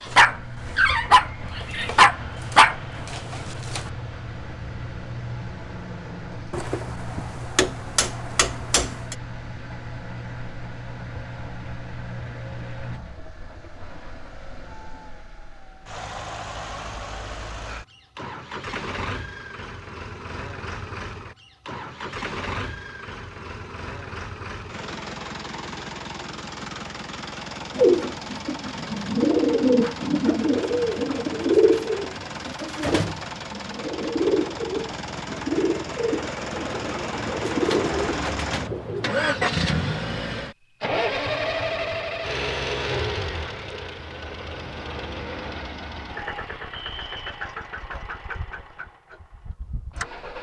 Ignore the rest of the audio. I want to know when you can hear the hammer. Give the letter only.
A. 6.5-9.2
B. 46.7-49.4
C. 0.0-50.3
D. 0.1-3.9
A.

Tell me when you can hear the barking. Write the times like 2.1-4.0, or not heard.
0.1-3.9.